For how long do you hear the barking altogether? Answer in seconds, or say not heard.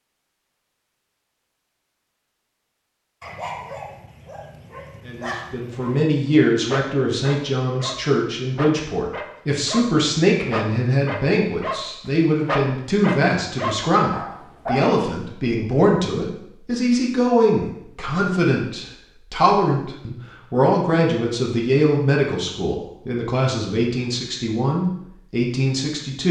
9 s.